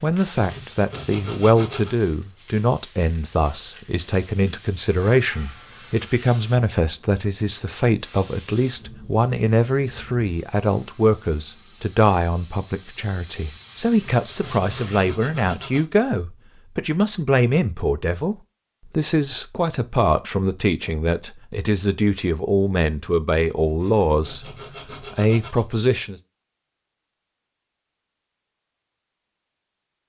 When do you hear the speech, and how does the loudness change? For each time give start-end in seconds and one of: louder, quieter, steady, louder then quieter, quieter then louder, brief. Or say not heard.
0.0-26.2 steady.